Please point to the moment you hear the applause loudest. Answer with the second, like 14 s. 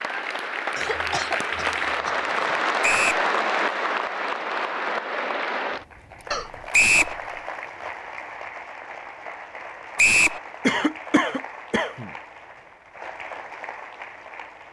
3 s.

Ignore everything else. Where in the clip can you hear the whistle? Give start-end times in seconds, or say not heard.
2.8-3.2, 6.7-7.2, 9.9-10.4.